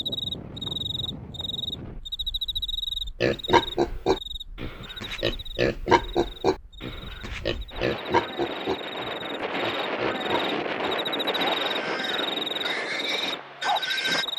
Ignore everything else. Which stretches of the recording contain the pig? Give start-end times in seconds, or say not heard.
3.2-14.2.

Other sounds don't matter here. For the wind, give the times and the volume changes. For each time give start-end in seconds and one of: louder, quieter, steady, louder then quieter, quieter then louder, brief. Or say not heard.
0.0-14.3 quieter then louder.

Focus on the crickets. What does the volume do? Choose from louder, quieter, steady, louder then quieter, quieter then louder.
quieter then louder.